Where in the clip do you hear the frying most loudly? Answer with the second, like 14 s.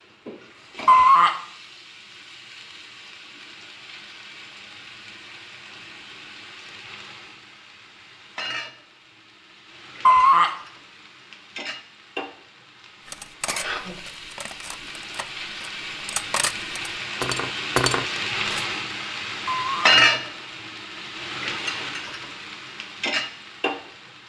20 s.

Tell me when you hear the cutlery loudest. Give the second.
18 s.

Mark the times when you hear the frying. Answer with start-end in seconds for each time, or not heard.
0.0-24.2.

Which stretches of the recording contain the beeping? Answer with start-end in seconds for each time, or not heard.
0.8-1.4, 10.1-10.6, 19.4-19.9.